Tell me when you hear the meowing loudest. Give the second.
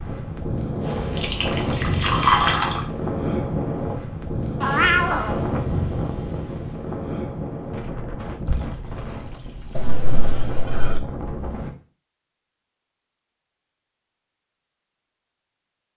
5 s.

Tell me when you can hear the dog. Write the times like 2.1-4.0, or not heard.
not heard.